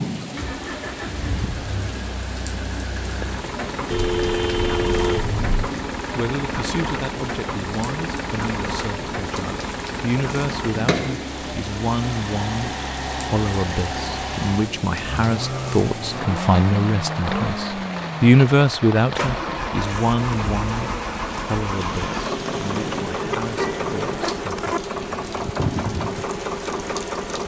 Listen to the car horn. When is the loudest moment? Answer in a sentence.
The loudest moment of the car horn is at 5 seconds.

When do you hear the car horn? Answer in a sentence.
You can hear the car horn from 3.9 to 5.5 s and from 22.8 to 24.8 s.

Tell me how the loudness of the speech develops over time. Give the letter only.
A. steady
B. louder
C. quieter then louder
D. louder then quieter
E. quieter
D.